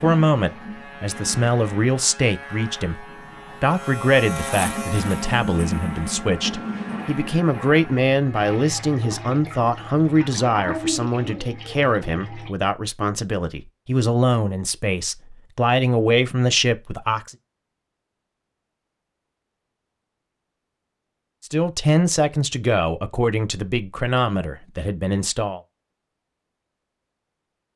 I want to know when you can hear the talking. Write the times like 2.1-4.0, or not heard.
0.0-17.4, 21.4-25.6.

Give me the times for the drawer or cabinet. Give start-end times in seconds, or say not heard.
not heard.